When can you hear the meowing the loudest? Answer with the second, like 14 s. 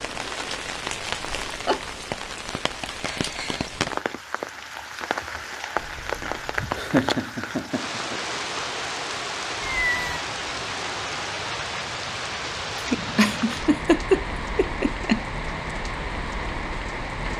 10 s.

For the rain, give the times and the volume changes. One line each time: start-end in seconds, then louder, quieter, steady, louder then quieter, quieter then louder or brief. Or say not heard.
0.0-17.3 steady.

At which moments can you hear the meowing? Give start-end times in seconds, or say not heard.
5.8-6.7, 9.6-10.2.